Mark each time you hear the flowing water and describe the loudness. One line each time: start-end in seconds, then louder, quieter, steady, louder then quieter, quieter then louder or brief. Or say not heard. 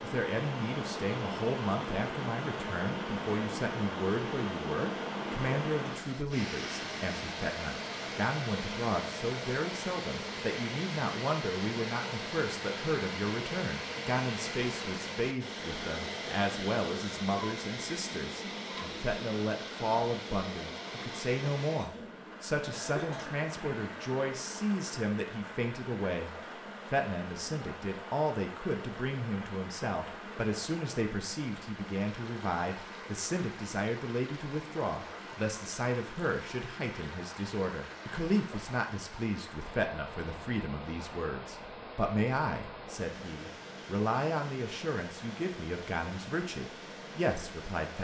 0.0-47.9 quieter.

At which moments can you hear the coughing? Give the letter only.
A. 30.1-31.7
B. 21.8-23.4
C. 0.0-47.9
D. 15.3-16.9
B.